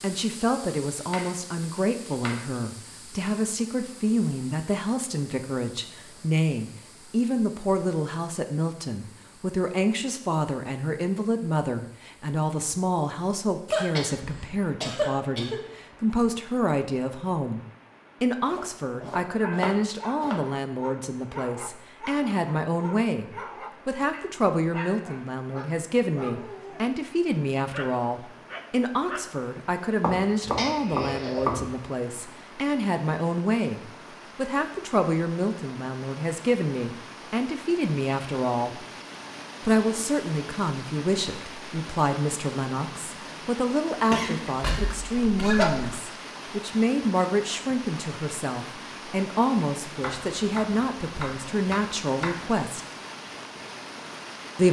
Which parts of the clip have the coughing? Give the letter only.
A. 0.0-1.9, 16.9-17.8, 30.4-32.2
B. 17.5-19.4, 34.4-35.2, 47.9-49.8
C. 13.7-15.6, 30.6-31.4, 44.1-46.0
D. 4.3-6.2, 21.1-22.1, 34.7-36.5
C.